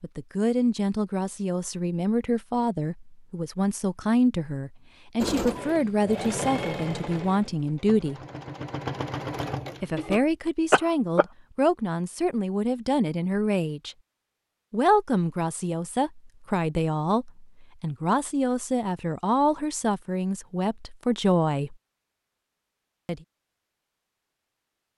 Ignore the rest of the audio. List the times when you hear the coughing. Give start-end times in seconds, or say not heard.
10.7-11.2.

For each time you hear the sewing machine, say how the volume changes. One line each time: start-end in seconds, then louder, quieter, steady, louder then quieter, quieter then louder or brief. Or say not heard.
5.2-10.2 quieter then louder.